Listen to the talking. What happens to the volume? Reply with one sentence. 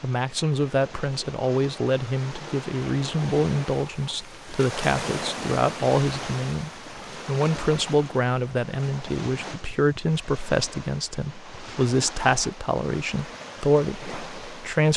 The loudness of the talking stays about the same.